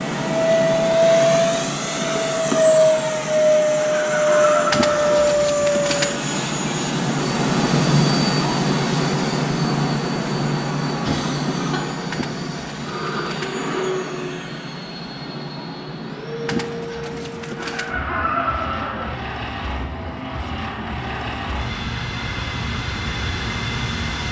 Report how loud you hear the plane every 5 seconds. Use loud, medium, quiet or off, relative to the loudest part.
loud, loud, medium, quiet, medium.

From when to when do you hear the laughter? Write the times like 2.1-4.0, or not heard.
3.8-5.1, 11.0-11.9, 17.6-19.1.